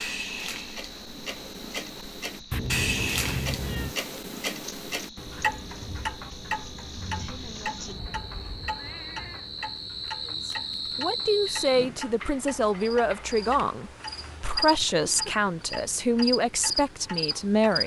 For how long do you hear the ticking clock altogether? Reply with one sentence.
The ticking clock can be heard for 18 seconds in total.